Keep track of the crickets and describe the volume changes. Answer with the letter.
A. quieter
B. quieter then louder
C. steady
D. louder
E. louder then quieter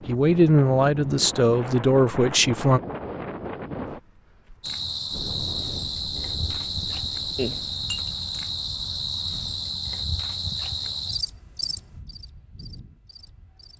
A.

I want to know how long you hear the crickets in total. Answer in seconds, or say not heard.
9 s.